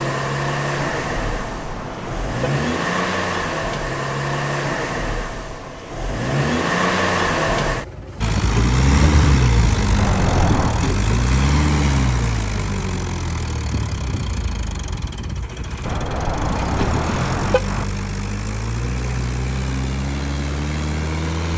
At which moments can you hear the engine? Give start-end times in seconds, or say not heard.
0.0-21.5.